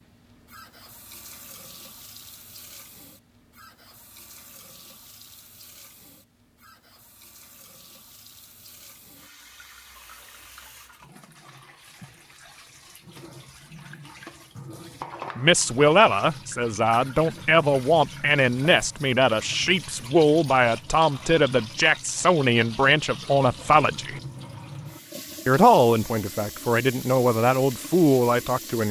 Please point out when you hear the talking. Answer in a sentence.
The talking can be heard from 15.3 to 24.2 s and from 25.4 to 28.8 s.